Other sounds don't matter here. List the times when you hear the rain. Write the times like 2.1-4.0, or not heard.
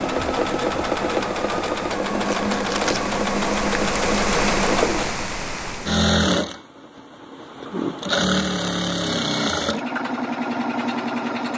0.0-6.0.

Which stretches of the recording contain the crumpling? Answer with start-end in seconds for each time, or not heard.
2.2-3.1.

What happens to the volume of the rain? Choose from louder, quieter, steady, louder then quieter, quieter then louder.
louder.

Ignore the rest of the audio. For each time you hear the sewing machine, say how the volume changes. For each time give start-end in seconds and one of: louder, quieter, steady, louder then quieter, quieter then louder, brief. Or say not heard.
0.0-11.5 steady.